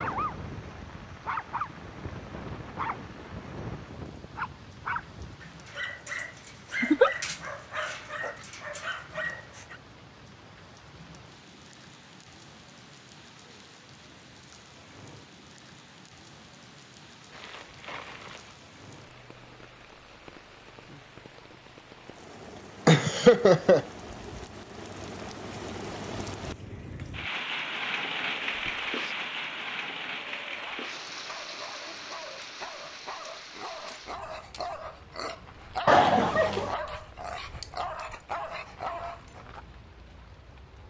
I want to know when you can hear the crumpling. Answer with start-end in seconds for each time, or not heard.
17.3-18.6.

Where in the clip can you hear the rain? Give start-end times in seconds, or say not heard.
0.0-40.8.